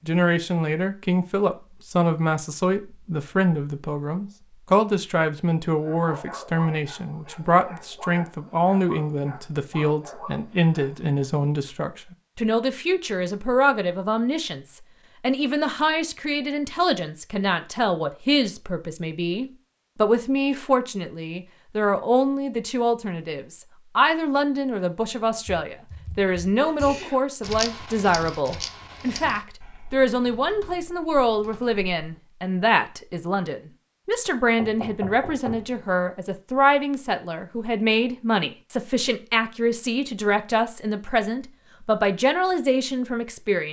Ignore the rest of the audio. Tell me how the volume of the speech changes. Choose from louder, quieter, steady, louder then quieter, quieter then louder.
steady.